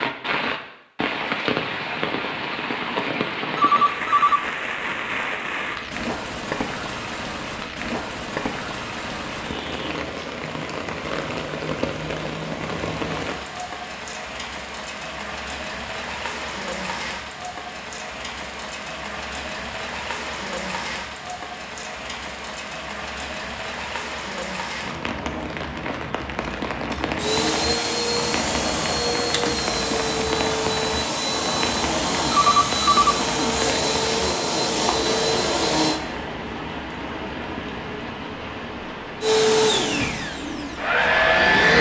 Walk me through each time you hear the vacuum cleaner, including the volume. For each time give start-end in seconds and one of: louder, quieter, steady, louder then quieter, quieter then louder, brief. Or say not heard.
27.0-36.0 steady
39.2-41.7 brief.